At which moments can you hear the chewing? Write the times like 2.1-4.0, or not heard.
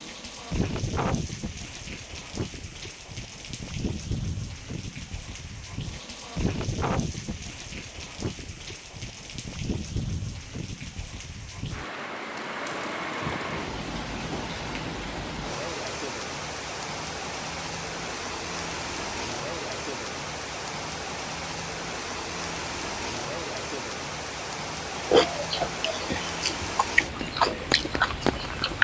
24.9-28.7.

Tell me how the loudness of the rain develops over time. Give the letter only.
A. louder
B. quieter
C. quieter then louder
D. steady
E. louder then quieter
D.